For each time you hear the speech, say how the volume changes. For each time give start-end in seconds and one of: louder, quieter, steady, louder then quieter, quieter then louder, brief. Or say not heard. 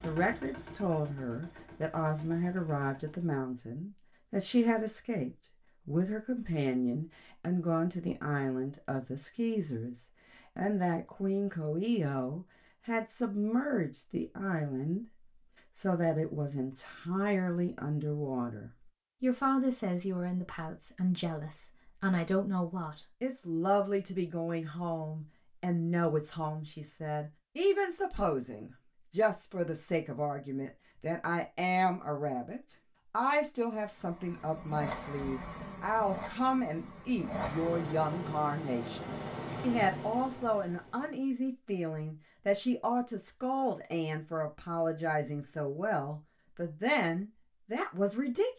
0.0-48.5 steady.